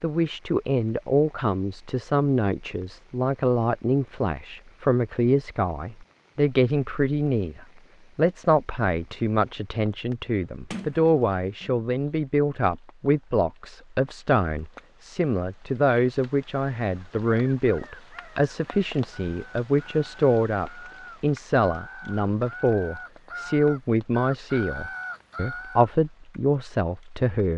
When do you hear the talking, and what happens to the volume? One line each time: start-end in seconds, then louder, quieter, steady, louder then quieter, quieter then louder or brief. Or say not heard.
0.0-27.5 steady.